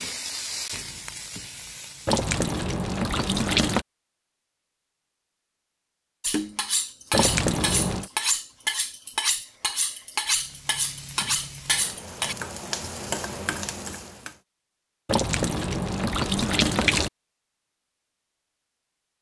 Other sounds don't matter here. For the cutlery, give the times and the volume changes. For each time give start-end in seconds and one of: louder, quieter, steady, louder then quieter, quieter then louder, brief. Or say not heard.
6.2-12.3 steady.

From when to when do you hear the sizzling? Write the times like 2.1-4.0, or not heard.
0.0-2.2, 10.2-14.4.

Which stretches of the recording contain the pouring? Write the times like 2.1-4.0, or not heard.
2.0-3.9, 7.1-8.1, 15.1-17.1.